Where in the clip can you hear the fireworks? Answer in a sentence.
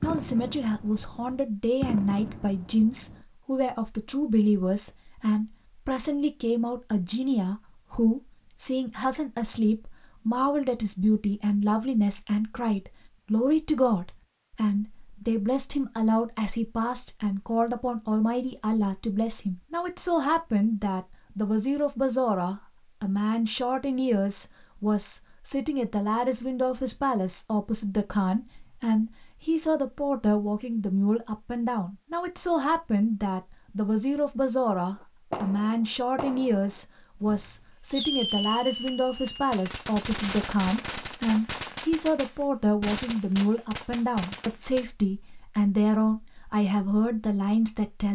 The fireworks can be heard from 0.0 to 3.2 s and from 35.0 to 44.9 s.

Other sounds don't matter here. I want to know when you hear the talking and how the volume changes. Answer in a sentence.
You can hear the talking from 0.0 to 48.0 s, at a steady volume.